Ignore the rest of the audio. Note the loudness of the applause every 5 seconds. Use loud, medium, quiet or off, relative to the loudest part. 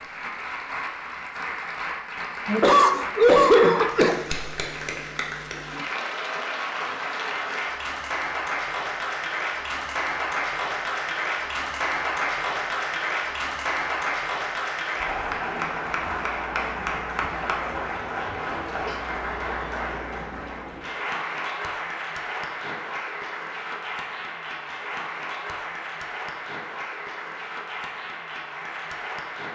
medium, loud, loud, loud, medium, medium.